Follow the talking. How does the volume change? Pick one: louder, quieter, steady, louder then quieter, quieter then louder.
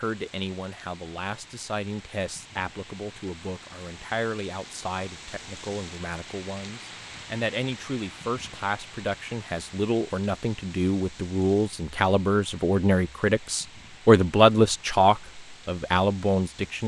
louder.